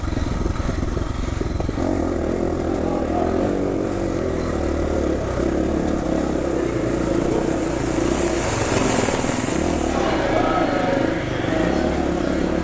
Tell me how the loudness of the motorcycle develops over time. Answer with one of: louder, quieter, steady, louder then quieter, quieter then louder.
steady.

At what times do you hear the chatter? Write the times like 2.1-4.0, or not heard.
2.3-12.6.